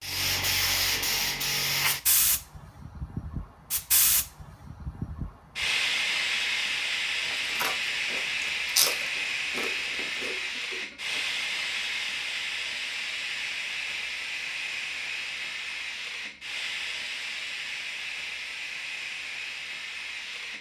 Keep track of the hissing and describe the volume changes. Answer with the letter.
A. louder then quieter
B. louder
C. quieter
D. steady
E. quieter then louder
C.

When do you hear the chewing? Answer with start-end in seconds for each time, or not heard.
7.3-10.3.